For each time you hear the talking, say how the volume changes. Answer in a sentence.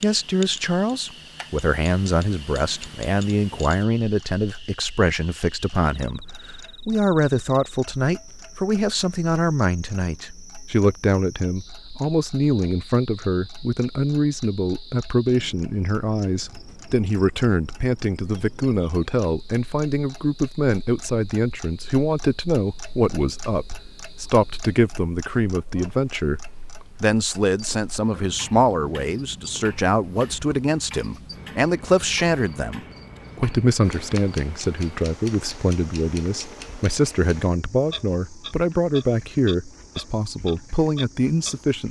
The talking can be heard from 0.0 to 41.8 s, at a steady volume.